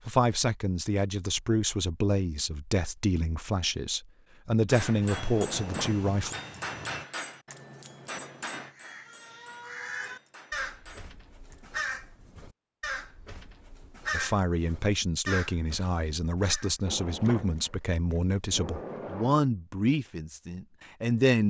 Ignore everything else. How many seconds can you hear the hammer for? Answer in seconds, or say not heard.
7 s.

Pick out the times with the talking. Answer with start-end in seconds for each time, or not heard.
0.1-6.3, 14.1-21.4.